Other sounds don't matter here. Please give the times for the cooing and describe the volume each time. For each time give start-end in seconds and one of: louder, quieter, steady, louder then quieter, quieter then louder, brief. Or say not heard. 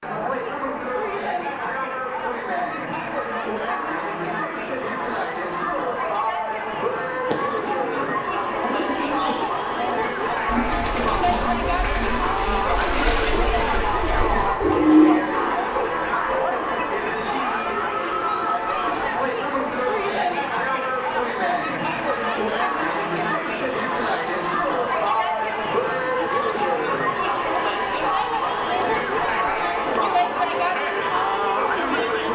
7.3-15.8 louder.